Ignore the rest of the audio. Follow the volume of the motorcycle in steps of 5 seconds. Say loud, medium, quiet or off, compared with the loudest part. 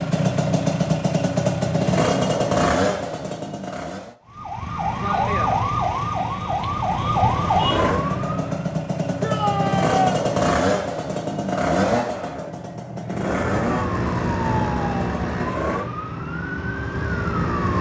loud, loud, loud, medium.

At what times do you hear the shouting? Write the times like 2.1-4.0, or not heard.
9.2-10.2.